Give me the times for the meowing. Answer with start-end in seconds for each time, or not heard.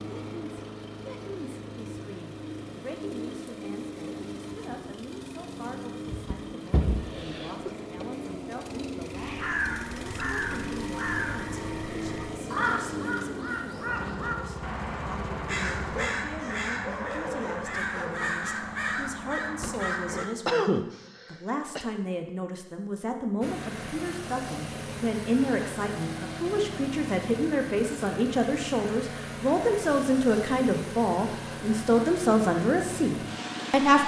not heard.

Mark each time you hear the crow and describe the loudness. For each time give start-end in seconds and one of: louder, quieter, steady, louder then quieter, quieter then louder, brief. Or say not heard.
9.2-20.2 steady.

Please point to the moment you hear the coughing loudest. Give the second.
21 s.